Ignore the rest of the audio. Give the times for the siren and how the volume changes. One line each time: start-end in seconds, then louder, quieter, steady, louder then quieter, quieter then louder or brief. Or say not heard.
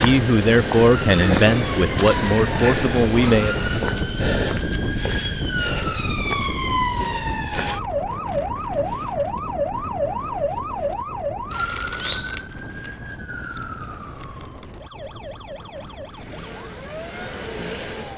0.0-18.1 quieter.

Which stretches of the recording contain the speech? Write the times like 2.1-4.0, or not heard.
0.0-3.5.